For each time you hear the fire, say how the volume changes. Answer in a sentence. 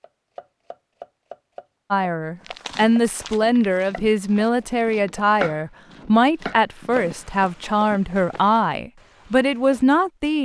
The fire can't be heard in this clip.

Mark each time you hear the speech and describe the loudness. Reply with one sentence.
You can hear the speech from 1.9 to 10.4 s, at a steady volume.